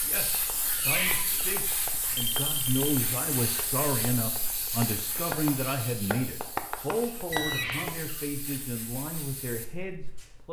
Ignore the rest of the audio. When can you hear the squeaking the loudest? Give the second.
1 s.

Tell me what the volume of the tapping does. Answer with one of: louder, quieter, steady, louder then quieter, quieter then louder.
quieter then louder.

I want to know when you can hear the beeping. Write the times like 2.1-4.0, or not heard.
2.1-3.0, 7.3-7.9.